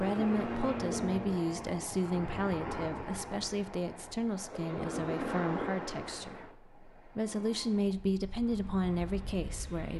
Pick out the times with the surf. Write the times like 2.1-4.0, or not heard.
0.0-9.8.